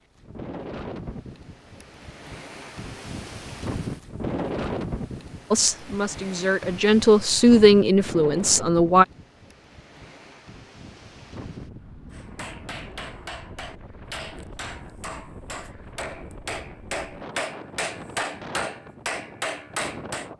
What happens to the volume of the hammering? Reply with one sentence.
The loudness of the hammering goes up.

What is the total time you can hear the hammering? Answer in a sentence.
The hammering can be heard for 8 seconds in total.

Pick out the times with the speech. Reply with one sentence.
You can hear the speech from 5.5 to 9.1 s.